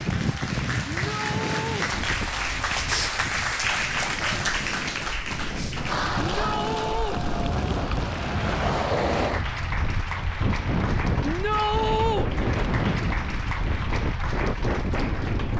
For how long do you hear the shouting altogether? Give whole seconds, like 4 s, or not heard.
3 s.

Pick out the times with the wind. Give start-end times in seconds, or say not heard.
0.0-15.5.